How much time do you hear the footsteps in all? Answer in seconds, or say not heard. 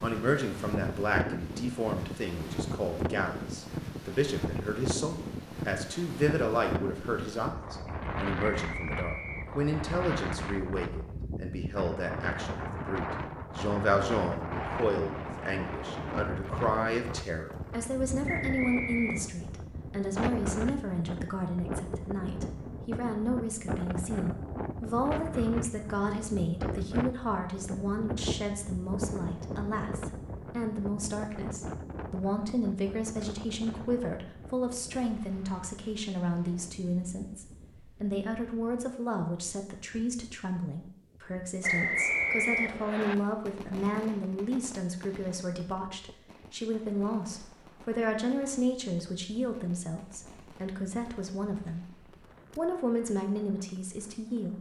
not heard.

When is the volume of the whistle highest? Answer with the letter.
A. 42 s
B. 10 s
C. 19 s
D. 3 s
A.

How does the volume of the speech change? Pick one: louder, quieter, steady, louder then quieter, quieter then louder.
steady.